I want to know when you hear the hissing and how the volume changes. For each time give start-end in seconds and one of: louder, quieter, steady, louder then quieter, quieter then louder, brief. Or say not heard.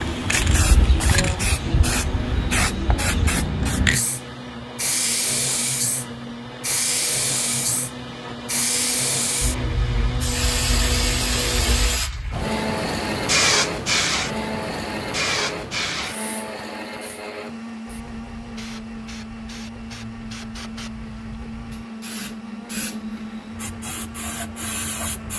0.0-25.3 quieter.